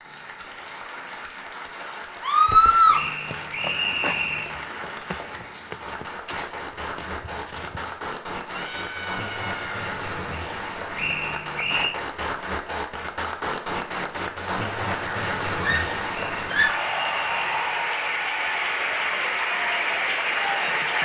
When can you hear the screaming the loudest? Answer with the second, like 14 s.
3 s.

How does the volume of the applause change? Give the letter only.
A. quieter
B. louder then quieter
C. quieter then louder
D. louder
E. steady
D.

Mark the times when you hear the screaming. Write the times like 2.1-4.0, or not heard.
2.2-3.0, 8.4-9.8, 15.6-16.9.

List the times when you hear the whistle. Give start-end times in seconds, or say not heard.
2.9-4.5, 10.9-11.9, 16.1-17.8.